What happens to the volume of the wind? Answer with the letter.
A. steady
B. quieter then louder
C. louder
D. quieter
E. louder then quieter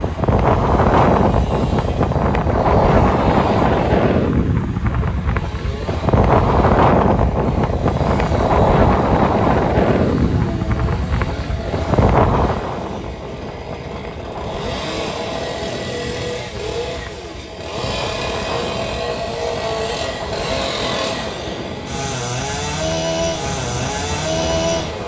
D.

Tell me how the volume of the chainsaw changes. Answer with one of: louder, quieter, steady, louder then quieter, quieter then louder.
louder.